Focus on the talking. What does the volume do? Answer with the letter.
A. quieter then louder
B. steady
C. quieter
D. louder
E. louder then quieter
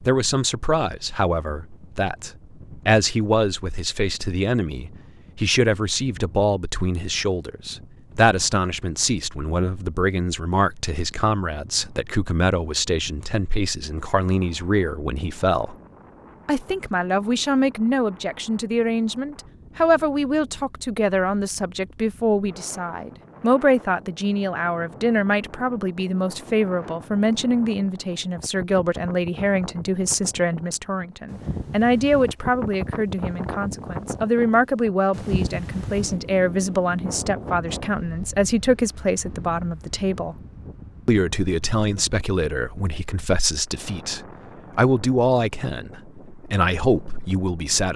B.